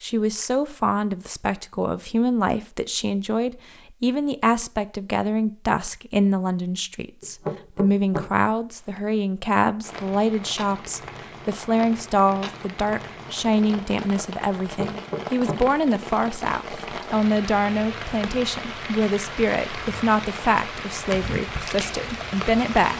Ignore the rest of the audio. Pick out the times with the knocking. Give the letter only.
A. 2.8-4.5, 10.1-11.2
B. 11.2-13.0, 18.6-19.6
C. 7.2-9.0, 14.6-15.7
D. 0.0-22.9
C.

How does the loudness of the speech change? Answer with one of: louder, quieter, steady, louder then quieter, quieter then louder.
steady.